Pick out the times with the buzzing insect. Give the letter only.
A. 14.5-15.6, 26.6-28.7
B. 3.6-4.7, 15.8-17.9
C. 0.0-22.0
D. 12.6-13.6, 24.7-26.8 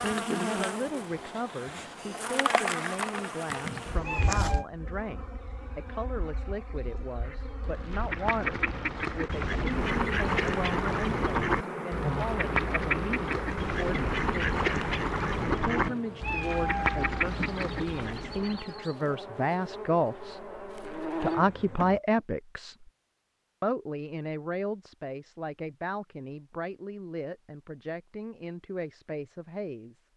C.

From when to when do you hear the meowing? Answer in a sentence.
You can hear the meowing from 3.6 to 4.7 s and from 15.8 to 17.9 s.